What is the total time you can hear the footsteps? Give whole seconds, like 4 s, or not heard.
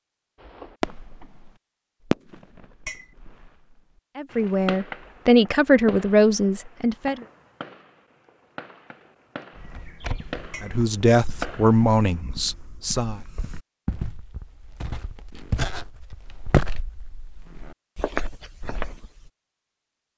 10 s.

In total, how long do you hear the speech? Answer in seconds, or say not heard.
6 s.